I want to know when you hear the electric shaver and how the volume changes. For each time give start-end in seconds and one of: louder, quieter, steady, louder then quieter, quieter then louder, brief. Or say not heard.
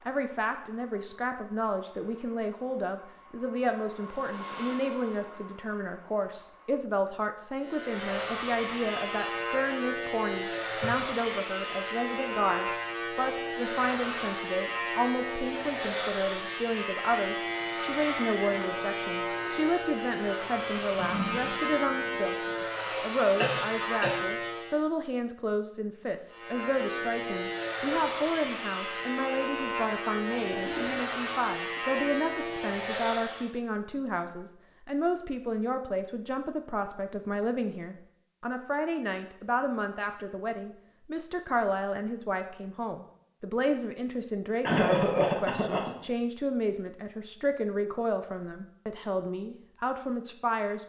7.6-24.9 steady
26.3-33.5 steady.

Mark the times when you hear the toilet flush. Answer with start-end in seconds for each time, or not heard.
20.8-22.6, 30.4-31.1.